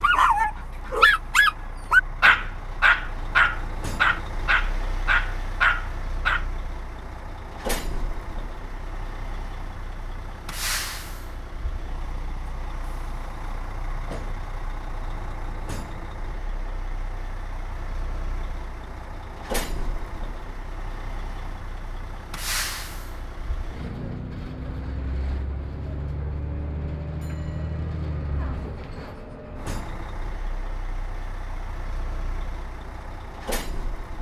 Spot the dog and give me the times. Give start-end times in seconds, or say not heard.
0.0-6.5.